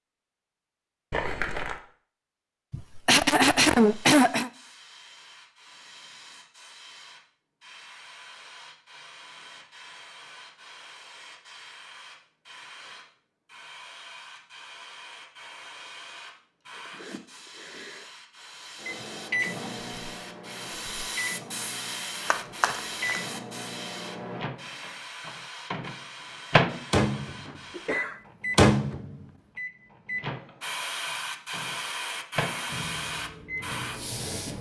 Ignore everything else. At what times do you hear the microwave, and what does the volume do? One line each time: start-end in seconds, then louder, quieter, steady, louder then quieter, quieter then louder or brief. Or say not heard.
18.8-34.5 louder then quieter.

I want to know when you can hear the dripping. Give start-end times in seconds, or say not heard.
not heard.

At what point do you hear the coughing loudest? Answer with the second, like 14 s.
4 s.